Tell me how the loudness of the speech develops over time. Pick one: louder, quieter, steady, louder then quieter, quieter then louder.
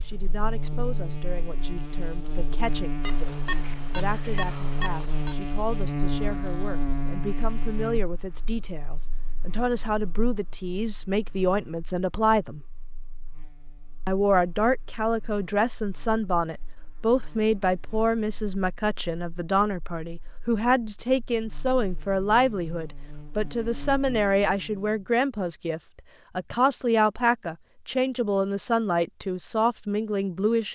louder.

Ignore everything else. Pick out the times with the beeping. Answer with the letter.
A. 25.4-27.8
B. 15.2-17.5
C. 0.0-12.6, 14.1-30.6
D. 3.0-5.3
D.